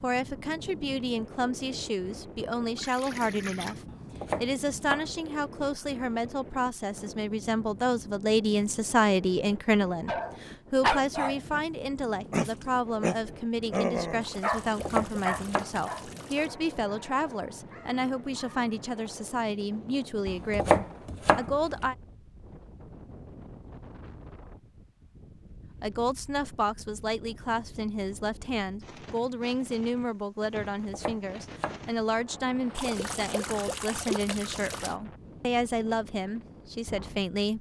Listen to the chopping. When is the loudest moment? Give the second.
21 s.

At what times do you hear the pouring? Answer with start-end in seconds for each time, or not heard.
2.8-3.9, 14.2-16.5, 32.8-35.0.